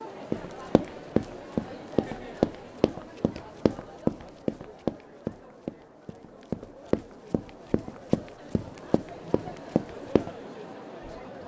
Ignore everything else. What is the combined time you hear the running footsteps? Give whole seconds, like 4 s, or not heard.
10 s.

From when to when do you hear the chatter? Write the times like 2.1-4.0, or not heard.
0.0-11.4.